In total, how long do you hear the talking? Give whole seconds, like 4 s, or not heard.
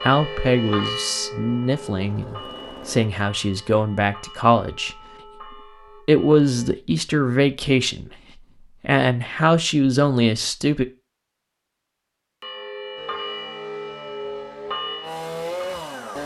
10 s.